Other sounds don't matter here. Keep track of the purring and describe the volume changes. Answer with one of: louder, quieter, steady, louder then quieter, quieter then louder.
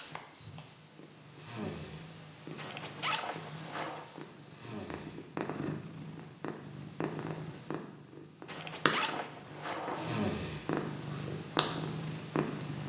louder.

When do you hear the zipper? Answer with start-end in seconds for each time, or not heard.
2.5-4.0, 8.4-10.2.